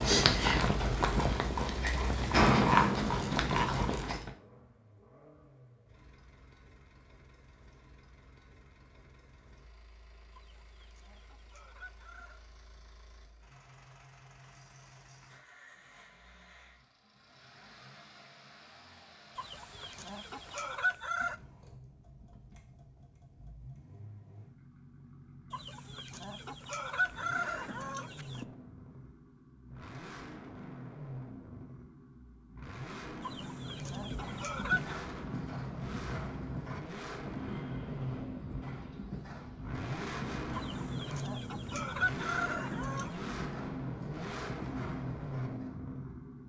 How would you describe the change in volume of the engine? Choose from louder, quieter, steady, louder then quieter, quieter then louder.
louder.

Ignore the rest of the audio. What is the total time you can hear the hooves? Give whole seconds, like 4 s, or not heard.
16 s.